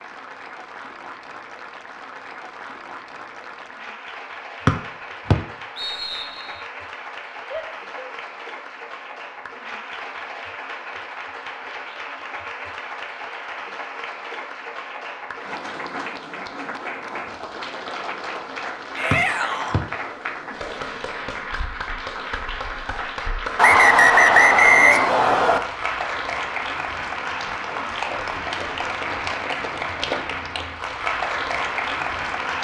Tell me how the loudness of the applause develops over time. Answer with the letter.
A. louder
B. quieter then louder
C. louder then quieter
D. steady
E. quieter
A.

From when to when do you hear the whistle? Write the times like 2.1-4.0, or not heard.
4.7-6.5, 19.1-19.8, 23.6-25.6.